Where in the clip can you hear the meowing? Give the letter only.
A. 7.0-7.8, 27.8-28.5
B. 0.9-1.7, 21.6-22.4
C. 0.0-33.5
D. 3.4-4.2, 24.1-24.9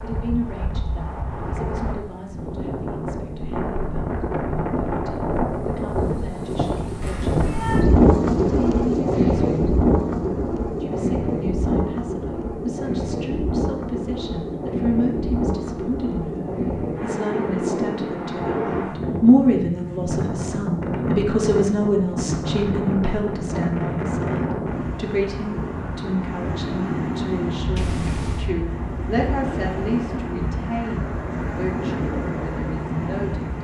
A.